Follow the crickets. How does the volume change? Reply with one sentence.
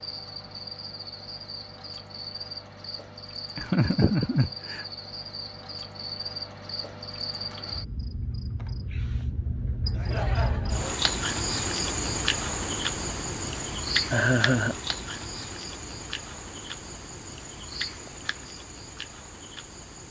The volume of the crickets goes up, then down.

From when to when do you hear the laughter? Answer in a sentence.
The laughter can be heard from 3.5 to 4.8 s, from 9.9 to 10.9 s and from 14.1 to 14.8 s.